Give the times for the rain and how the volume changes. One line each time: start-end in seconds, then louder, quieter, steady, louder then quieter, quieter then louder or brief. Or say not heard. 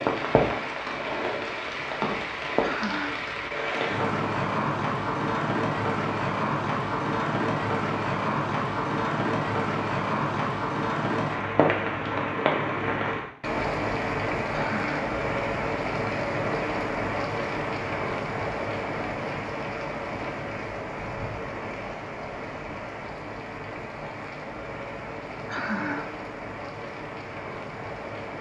0.0-28.3 quieter.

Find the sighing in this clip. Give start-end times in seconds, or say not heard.
2.6-3.3, 14.5-15.0, 25.4-26.1.